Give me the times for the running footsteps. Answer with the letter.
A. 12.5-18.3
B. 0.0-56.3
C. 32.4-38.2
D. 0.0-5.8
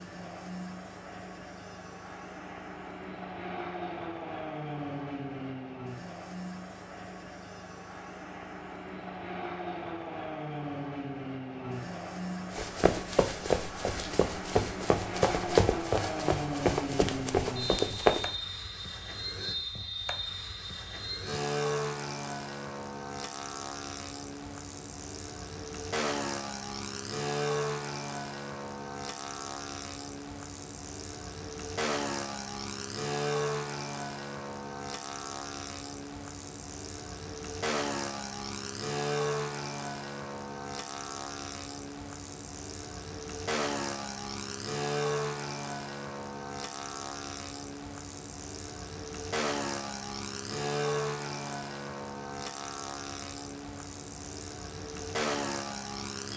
A.